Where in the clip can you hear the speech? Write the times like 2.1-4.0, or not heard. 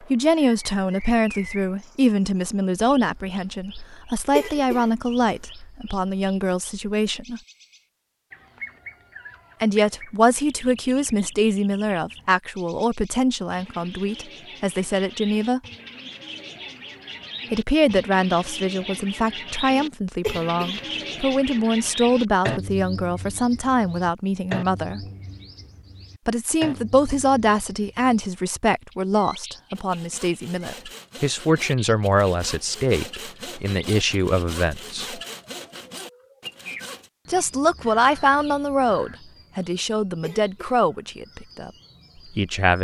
0.1-7.4, 9.6-15.6, 17.5-25.0, 26.2-35.2, 37.2-41.7, 42.3-42.7.